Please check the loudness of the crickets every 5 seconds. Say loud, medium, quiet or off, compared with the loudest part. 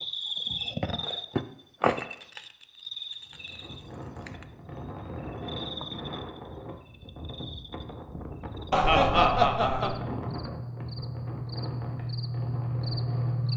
loud, medium, loud.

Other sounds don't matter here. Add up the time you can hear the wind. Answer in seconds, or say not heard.
10 s.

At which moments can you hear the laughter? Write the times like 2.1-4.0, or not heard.
8.7-9.9.